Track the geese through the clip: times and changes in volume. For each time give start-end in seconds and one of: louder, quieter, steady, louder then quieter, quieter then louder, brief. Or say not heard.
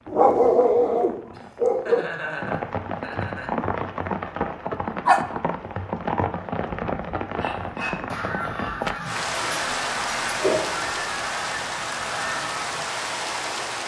7.4-12.9 steady.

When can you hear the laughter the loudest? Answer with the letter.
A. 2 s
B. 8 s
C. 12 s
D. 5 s
A.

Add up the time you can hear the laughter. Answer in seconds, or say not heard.
2 s.